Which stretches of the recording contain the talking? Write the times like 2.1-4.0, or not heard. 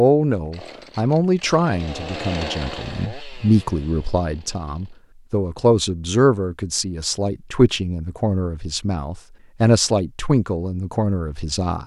0.0-11.8.